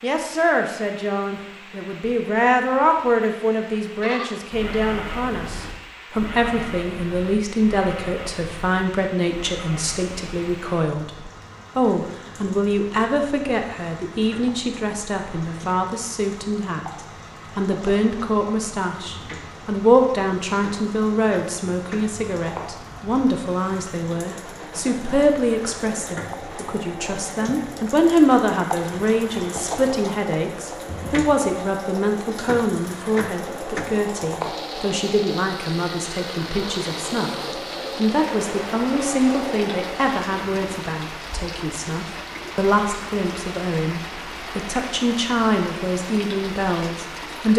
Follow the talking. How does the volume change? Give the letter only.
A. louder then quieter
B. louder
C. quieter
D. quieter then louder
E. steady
E.